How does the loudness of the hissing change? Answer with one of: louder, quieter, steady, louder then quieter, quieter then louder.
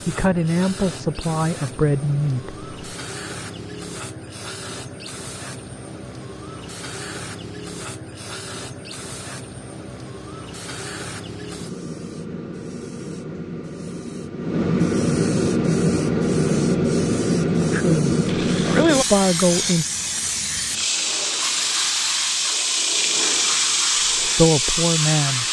louder.